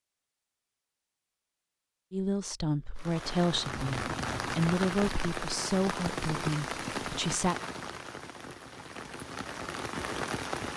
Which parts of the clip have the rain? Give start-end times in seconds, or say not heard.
3.0-10.7.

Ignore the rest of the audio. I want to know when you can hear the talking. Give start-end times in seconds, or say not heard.
2.1-7.6.